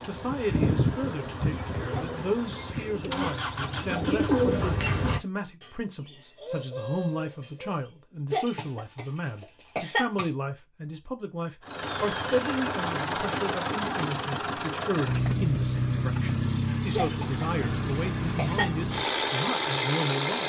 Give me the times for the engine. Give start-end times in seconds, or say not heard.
0.0-4.8, 11.6-20.4.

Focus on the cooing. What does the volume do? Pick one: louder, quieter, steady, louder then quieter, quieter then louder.
louder then quieter.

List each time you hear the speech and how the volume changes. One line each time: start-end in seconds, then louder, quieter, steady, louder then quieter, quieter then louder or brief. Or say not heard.
0.0-20.4 steady.